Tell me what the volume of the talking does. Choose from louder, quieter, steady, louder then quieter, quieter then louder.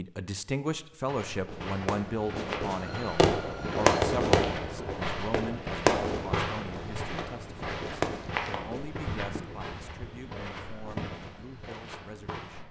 quieter.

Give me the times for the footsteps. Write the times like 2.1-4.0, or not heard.
1.1-12.6.